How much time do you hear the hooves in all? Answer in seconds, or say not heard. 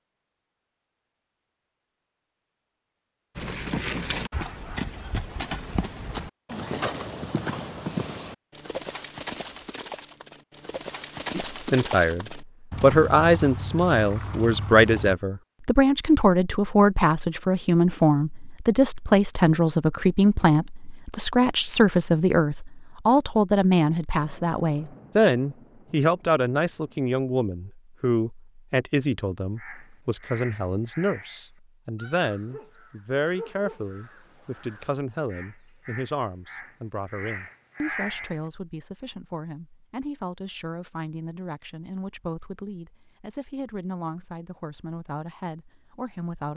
12 s.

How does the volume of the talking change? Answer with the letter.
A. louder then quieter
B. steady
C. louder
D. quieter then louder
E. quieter
E.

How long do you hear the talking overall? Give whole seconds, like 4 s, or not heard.
35 s.